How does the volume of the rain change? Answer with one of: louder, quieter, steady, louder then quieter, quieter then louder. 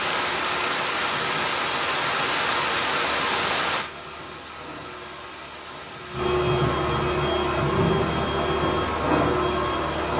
quieter.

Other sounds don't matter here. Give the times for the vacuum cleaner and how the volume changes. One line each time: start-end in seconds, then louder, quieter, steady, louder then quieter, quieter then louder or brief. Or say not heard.
0.2-10.1 louder.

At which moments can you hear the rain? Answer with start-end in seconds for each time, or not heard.
0.0-10.1.